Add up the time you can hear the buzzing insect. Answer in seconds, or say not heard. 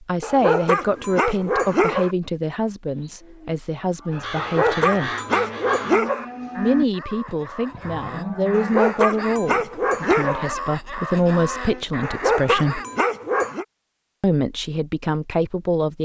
not heard.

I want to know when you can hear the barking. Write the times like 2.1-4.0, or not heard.
0.2-2.1, 4.3-6.2, 8.5-10.4, 12.0-13.7.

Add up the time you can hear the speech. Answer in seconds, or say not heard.
13 s.